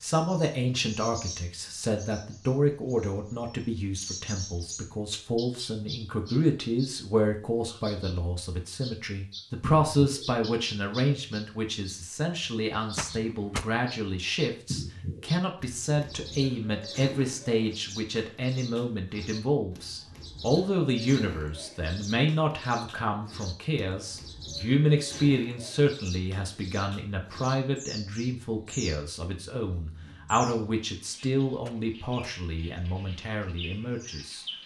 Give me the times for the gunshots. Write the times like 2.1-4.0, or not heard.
12.9-13.7, 31.6-32.4.